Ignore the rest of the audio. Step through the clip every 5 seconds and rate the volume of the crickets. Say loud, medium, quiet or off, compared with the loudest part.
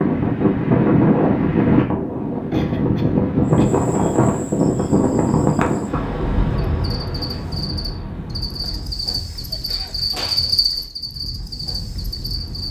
quiet, medium, loud.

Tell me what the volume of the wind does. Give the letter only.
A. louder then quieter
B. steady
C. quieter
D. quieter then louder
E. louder
C.